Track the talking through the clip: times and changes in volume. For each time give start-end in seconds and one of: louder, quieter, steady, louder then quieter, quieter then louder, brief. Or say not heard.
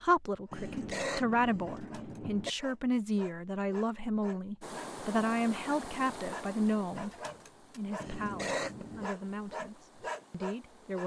0.0-11.0 quieter.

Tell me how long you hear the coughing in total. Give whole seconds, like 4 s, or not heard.
3 s.